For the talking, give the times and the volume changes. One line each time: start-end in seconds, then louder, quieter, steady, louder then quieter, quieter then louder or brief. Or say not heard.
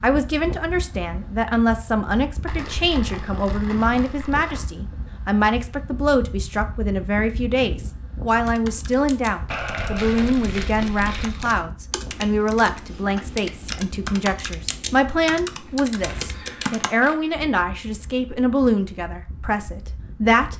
0.0-20.5 steady.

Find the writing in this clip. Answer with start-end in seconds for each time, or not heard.
not heard.